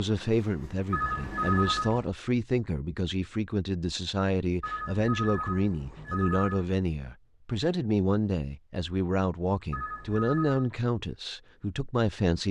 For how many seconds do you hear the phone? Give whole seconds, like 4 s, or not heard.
4 s.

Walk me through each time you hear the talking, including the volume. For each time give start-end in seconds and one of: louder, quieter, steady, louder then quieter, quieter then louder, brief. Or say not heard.
0.0-12.4 steady.